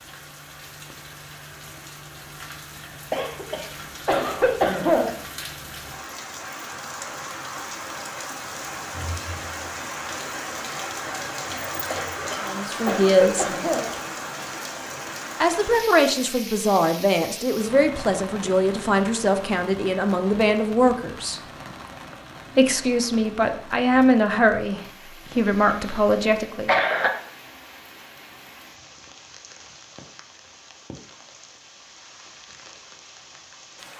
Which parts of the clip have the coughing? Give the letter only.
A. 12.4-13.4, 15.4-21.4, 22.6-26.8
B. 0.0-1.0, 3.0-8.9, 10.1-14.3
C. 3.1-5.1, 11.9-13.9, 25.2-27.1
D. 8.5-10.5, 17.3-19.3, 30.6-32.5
C.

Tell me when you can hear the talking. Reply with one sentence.
The talking can be heard from 12.4 to 13.4 s, from 15.4 to 21.4 s and from 22.6 to 26.8 s.